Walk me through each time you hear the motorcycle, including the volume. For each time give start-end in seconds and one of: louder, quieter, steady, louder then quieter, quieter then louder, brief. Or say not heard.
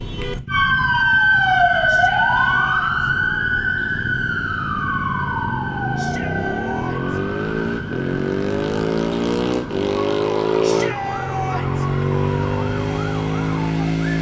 0.0-14.1 louder.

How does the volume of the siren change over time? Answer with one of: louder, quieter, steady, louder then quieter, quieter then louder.
quieter.